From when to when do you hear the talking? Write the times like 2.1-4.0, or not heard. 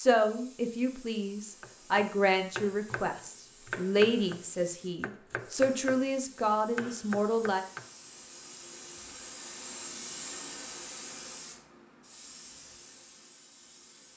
0.0-7.6.